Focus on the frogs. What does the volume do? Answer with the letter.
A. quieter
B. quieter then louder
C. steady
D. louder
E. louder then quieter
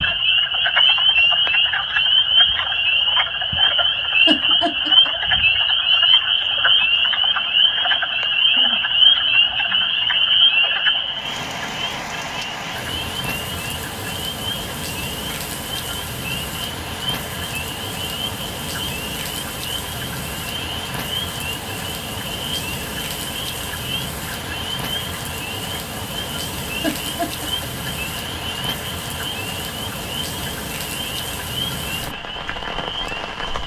A.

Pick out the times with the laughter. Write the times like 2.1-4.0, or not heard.
4.2-5.1, 26.8-27.7.